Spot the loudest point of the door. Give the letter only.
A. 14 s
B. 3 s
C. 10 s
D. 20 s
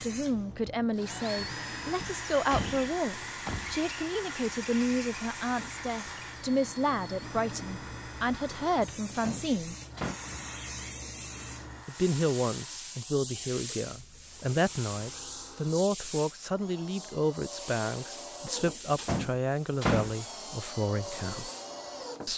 D.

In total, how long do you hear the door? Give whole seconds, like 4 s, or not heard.
4 s.